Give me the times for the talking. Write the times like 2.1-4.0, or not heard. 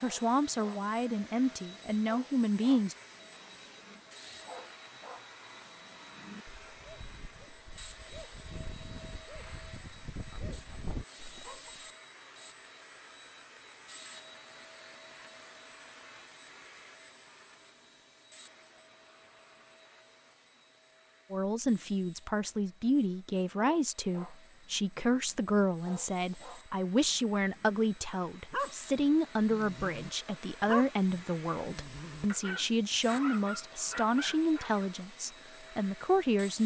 0.0-3.0, 21.3-36.6.